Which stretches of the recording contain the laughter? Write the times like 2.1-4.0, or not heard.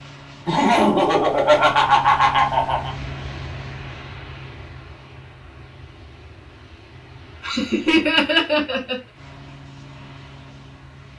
0.5-3.0, 7.4-8.9.